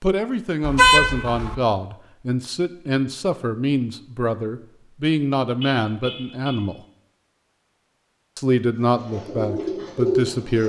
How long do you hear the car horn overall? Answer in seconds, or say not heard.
2 s.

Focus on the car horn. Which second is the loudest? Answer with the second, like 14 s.
1 s.